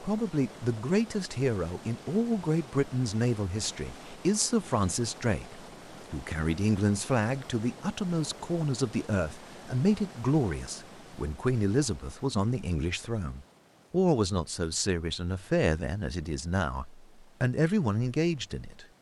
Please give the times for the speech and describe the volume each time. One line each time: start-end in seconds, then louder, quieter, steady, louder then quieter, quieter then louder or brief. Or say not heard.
0.0-18.9 steady.